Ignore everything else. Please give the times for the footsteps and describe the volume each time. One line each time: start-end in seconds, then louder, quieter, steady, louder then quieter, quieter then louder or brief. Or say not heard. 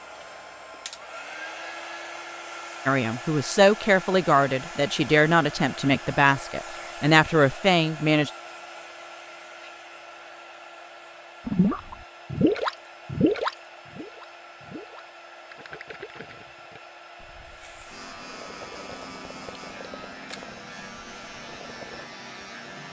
not heard.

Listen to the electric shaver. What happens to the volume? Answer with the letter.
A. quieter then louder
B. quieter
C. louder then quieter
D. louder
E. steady
E.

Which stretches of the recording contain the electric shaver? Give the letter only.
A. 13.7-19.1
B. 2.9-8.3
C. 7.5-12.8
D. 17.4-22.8
D.